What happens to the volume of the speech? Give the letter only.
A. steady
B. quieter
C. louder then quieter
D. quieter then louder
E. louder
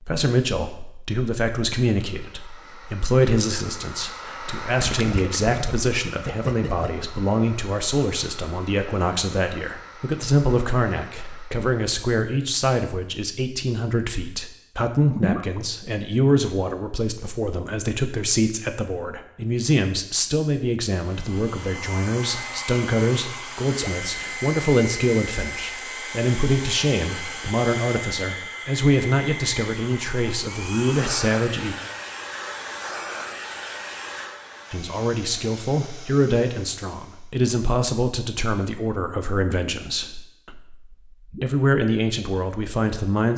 A.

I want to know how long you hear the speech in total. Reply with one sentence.
You can hear the speech for 40 seconds altogether.